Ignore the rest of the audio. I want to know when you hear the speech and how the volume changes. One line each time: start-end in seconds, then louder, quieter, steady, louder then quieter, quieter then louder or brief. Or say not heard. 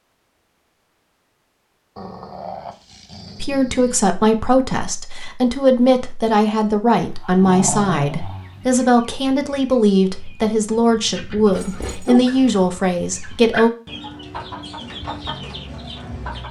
3.4-13.7 steady.